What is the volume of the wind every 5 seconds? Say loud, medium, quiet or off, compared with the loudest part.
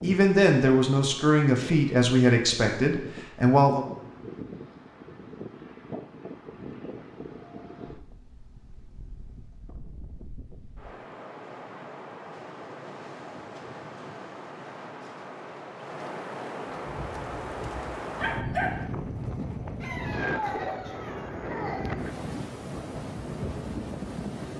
medium, medium, medium, loud, loud.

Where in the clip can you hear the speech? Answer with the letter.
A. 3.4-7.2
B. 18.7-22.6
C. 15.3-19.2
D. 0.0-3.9
D.